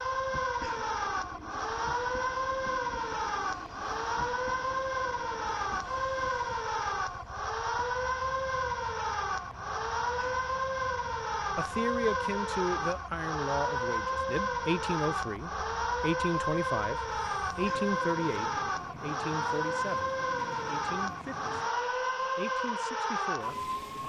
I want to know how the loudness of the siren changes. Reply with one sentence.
The volume of the siren stays about the same.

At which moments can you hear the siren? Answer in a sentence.
The siren can be heard from 0.0 to 24.0 s.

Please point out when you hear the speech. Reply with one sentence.
You can hear the speech from 11.6 to 24.0 s.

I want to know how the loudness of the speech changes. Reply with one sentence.
The loudness of the speech goes down.